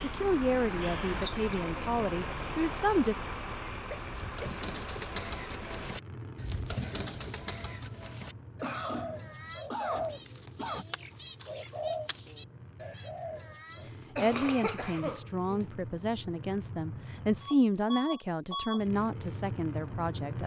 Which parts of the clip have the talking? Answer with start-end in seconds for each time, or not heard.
0.0-3.1, 14.2-20.4.